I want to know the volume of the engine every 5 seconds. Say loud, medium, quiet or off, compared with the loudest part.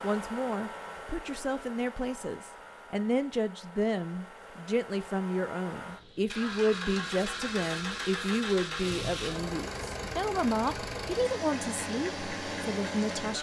medium, loud, loud.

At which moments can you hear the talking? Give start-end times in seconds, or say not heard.
0.0-13.3.